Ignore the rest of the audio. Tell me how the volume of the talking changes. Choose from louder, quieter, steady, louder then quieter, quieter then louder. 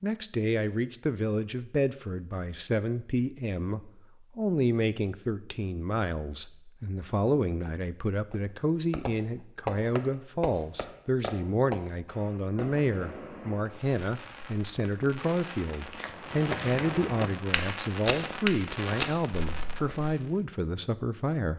steady.